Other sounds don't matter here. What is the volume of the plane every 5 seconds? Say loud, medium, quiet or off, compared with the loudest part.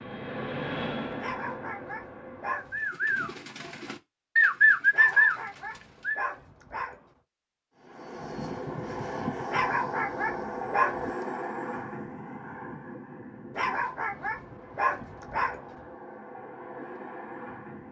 loud, loud, loud, medium.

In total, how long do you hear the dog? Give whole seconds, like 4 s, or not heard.
8 s.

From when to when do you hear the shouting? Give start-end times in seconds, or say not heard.
not heard.